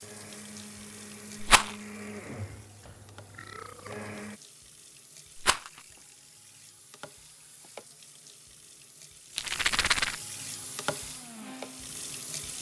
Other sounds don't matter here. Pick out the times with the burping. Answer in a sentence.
The burping can be heard from 2.8 to 4.1 s.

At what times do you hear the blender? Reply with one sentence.
The blender can be heard from 0.0 to 4.4 s and from 10.4 to 12.5 s.